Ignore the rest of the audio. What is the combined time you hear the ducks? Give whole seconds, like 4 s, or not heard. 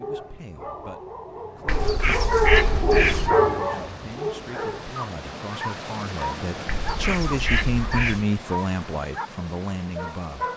3 s.